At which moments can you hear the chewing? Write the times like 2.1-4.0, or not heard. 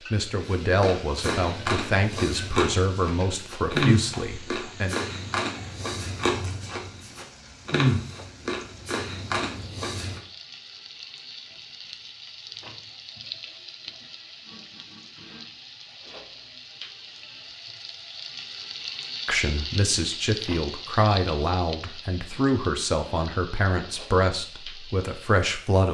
0.5-10.2.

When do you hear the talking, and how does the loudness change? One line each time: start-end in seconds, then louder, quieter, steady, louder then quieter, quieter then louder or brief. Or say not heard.
0.1-5.0 steady
19.2-25.8 steady.